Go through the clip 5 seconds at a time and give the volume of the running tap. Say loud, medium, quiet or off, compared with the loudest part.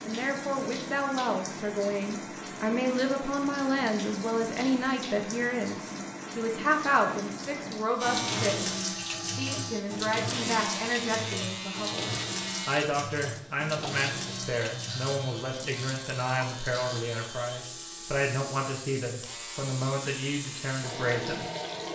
loud, loud, loud, medium, loud.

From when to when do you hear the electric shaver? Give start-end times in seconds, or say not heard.
8.0-21.8.